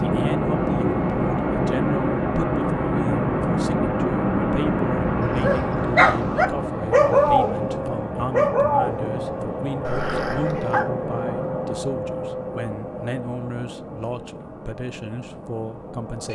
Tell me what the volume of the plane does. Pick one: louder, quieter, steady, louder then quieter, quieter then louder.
quieter.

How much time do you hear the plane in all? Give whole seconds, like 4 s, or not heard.
16 s.